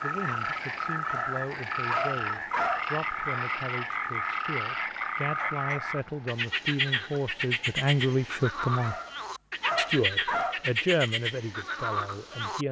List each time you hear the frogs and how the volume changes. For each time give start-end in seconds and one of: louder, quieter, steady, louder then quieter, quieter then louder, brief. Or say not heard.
0.0-12.6 steady.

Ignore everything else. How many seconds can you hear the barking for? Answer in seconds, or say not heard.
4 s.